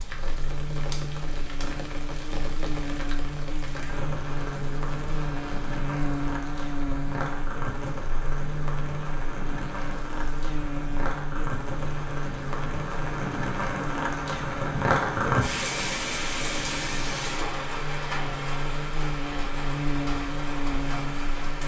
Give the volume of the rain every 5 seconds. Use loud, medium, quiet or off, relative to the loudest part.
medium, medium, loud, loud, medium.